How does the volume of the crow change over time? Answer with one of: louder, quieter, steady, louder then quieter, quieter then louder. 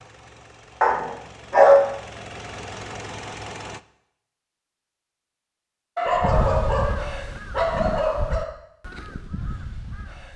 quieter.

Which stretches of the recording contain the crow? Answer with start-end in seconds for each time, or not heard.
6.0-10.3.